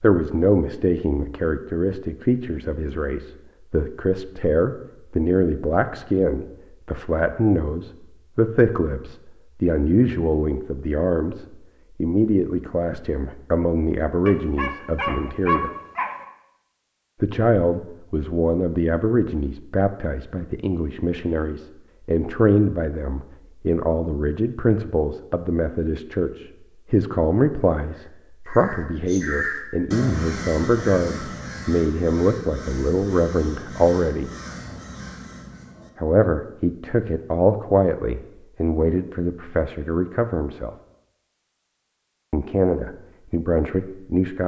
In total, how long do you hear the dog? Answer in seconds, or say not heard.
2 s.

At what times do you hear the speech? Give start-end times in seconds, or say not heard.
0.0-15.7, 17.2-34.3, 36.0-40.7, 42.3-44.4.